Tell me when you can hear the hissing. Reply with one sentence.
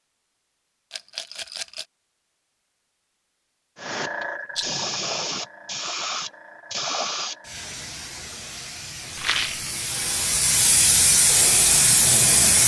You can hear the hissing from 3.8 to 12.6 s.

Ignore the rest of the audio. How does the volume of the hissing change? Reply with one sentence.
The loudness of the hissing goes down, then up.